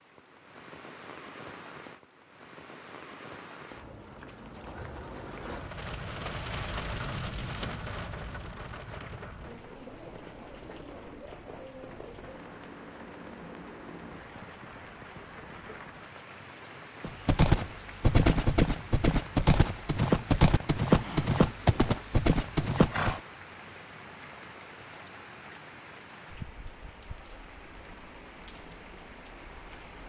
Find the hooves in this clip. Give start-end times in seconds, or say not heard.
17.0-23.2.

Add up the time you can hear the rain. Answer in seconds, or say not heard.
30 s.